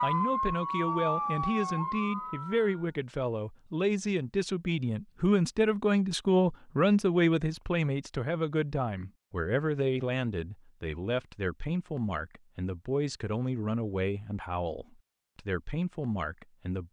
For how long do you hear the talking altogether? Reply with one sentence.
You can hear the talking for 17 seconds altogether.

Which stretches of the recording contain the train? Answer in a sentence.
The train can't be heard in this clip.